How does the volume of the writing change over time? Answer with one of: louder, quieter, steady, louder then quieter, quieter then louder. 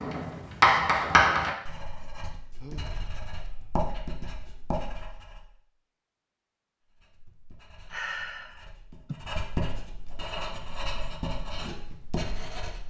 quieter then louder.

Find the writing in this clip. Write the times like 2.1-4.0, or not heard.
0.0-5.5, 6.8-12.8.